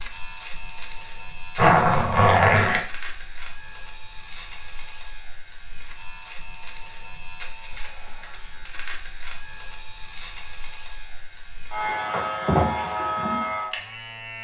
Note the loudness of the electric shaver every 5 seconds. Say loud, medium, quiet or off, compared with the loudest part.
medium, medium, loud.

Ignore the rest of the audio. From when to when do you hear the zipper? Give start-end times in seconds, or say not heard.
1.6-2.8.